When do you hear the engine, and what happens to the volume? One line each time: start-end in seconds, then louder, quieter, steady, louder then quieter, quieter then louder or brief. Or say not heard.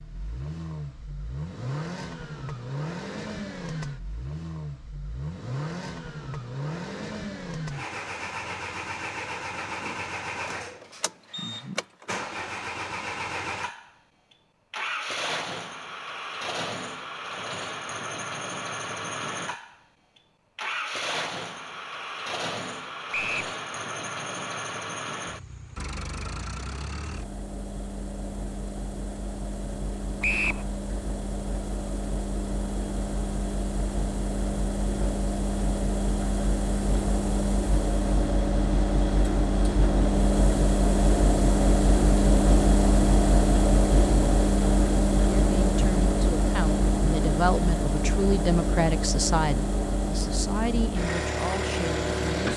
0.0-52.5 louder.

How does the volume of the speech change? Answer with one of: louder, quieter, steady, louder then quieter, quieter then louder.
louder then quieter.